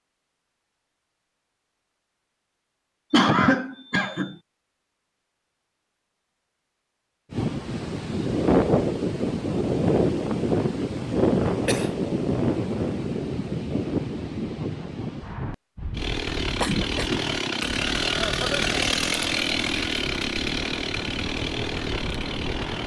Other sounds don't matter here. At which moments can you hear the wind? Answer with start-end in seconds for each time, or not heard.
7.3-22.8.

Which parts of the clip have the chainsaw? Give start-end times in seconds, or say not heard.
15.9-22.8.